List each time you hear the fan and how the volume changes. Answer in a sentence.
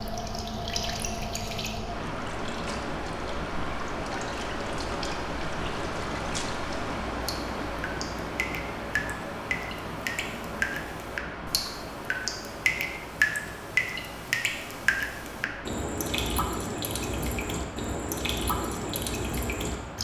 You can hear the fan from 0.0 to 20.0 s, getting quieter.